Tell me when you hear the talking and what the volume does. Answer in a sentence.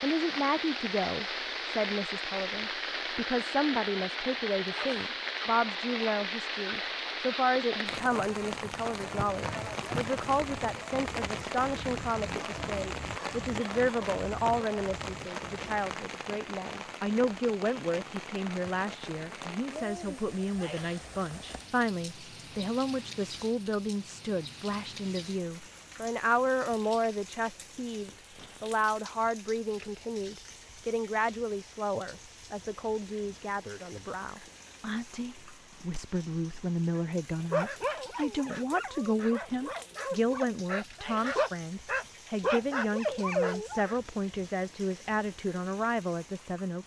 The talking can be heard from 0.0 to 46.8 s, at a steady volume.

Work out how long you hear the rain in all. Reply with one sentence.
You can hear the rain for 47 seconds altogether.